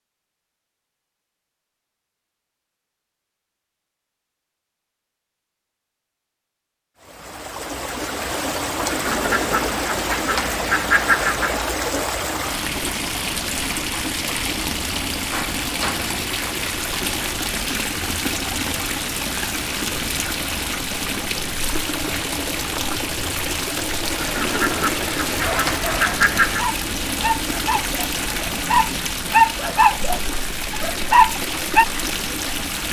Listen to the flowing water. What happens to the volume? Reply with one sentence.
The volume of the flowing water stays about the same.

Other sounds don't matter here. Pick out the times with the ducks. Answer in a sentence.
The ducks can be heard from 8.8 to 11.7 s and from 24.1 to 26.6 s.